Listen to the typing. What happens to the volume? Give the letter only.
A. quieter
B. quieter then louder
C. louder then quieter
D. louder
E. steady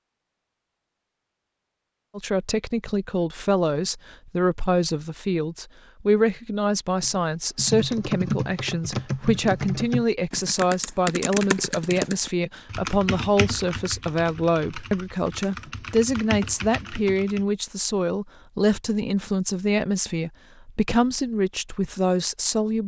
A.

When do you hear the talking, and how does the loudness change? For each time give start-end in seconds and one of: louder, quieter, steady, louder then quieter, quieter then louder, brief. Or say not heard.
2.1-22.8 steady.